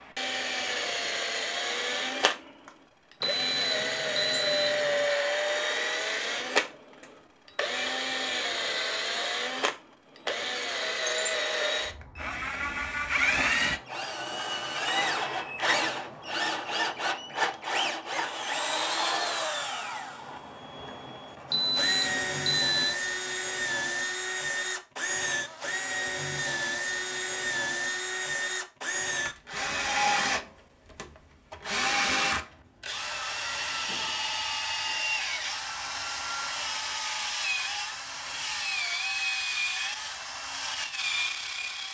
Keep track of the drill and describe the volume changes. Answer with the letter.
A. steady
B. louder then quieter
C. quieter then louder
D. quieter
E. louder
A.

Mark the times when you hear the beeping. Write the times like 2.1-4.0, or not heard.
3.2-5.2, 21.5-22.9.